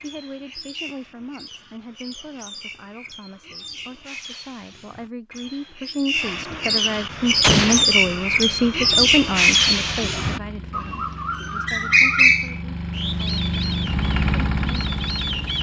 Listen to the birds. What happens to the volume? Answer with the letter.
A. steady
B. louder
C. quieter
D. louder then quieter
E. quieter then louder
B.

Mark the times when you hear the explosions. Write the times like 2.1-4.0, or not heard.
7.4-7.8.